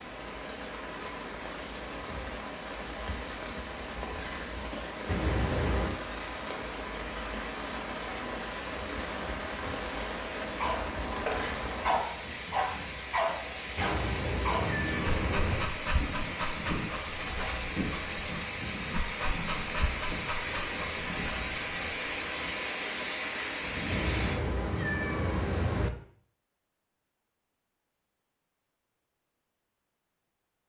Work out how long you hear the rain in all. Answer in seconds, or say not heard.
24 s.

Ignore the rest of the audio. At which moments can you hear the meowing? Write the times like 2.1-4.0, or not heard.
5.0-6.0, 13.8-15.7, 23.9-25.9.